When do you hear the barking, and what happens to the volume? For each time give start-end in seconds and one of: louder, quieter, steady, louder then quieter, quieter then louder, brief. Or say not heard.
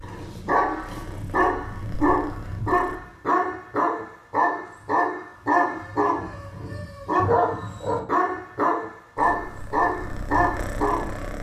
0.0-11.3 steady.